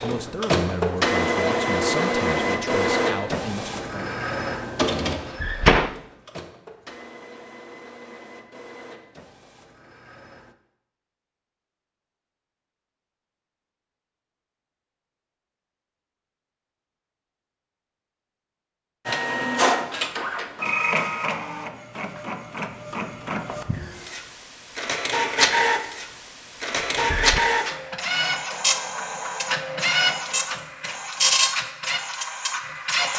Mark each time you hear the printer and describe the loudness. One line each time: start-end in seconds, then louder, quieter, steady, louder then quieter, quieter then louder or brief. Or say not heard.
0.0-10.6 quieter
19.1-33.1 quieter then louder.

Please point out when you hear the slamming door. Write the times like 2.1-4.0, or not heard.
5.3-6.0, 26.9-27.4.